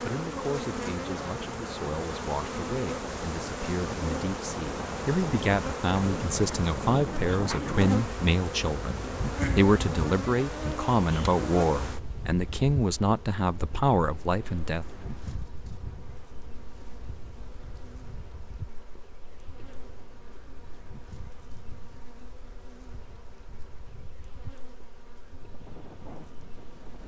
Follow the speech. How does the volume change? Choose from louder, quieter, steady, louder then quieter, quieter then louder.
louder.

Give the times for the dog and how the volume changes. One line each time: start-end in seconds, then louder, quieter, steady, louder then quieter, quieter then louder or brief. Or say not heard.
not heard.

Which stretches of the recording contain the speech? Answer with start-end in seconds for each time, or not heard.
0.0-14.8.